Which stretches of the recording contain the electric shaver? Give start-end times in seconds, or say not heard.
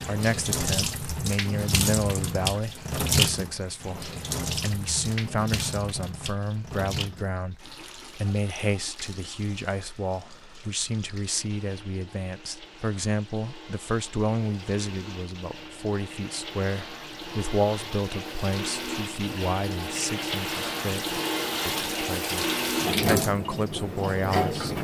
not heard.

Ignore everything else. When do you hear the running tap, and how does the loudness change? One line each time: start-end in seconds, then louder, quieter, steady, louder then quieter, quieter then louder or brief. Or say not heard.
0.0-24.8 quieter then louder.